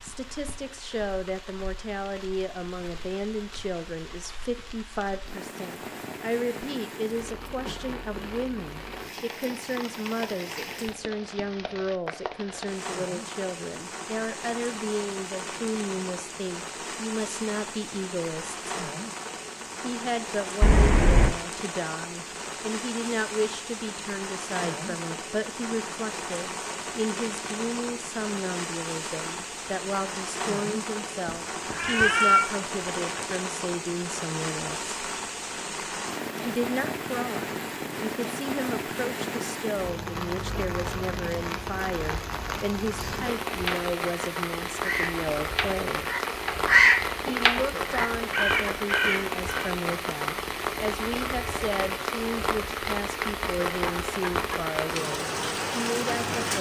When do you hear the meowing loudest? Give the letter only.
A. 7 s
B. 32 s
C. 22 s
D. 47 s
B.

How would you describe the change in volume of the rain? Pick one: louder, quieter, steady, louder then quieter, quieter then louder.
louder.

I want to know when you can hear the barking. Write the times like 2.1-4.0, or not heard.
not heard.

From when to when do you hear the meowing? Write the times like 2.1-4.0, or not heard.
20.6-21.4, 31.2-33.2.